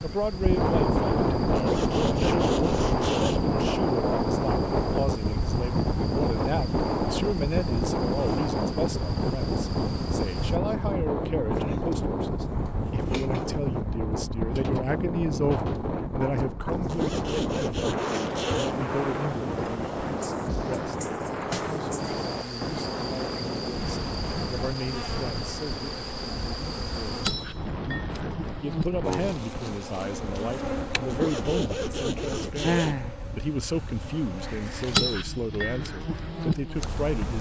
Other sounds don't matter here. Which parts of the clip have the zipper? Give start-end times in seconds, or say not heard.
1.5-3.5, 16.9-18.8, 31.1-33.0.